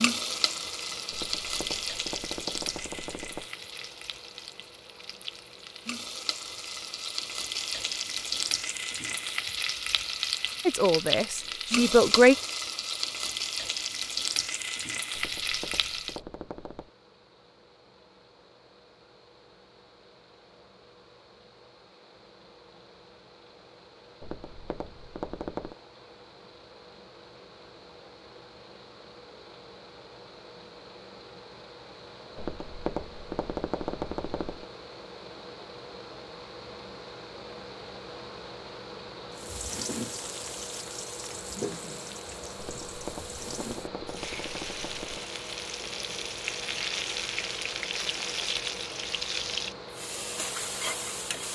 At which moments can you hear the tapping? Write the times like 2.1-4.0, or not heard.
1.1-3.5, 15.2-16.9, 24.2-25.8, 32.4-34.6, 42.6-45.2.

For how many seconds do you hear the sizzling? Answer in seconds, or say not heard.
28 s.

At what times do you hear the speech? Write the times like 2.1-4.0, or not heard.
10.7-12.3.